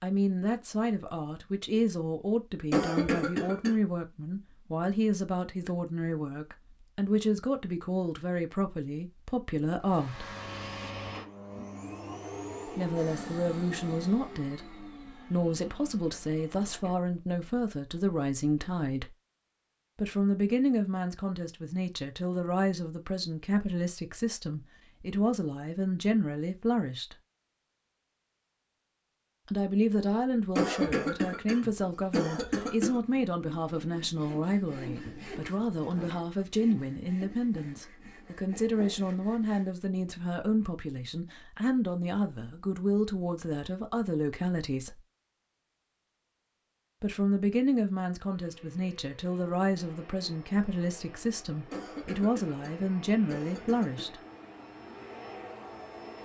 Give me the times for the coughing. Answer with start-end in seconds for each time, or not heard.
2.7-3.8, 30.6-33.0, 51.7-54.1.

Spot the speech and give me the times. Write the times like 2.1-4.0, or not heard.
0.0-10.3, 12.7-19.1, 19.9-27.1, 29.4-45.0, 47.0-54.1.